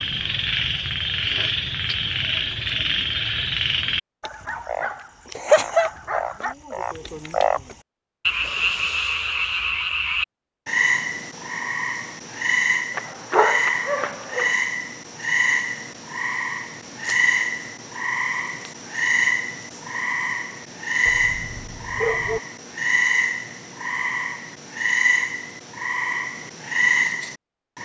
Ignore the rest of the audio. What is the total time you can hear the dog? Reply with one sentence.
The dog can be heard for 5 seconds in total.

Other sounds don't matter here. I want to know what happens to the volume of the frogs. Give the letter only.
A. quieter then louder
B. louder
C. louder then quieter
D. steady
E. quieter
D.